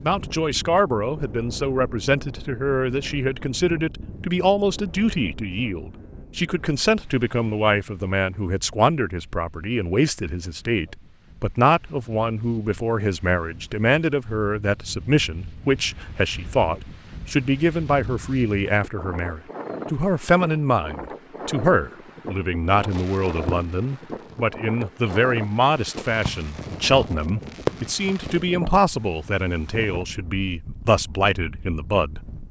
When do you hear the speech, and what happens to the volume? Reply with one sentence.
You can hear the speech from 0.0 to 32.2 s, at a steady volume.